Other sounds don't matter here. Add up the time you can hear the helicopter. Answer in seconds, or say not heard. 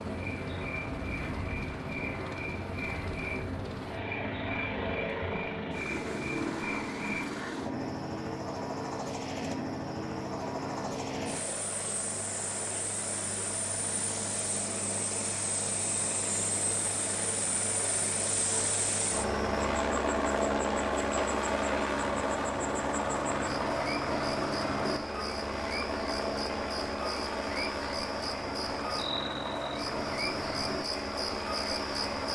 32 s.